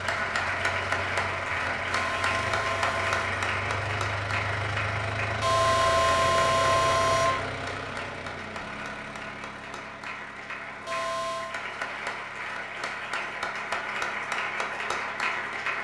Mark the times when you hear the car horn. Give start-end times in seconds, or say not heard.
1.9-3.3, 5.4-7.4, 10.8-11.6.